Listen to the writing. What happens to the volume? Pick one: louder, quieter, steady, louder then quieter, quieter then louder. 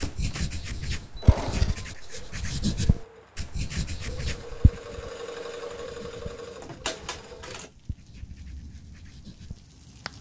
quieter.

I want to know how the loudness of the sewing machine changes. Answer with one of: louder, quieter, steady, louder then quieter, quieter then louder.
quieter then louder.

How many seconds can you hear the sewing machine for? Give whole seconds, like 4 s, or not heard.
8 s.